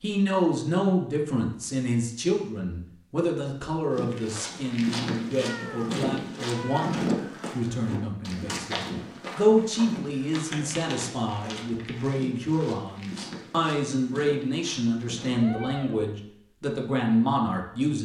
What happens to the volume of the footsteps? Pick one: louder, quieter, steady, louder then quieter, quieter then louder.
quieter.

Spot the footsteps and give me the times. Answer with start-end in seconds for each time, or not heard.
3.9-15.4.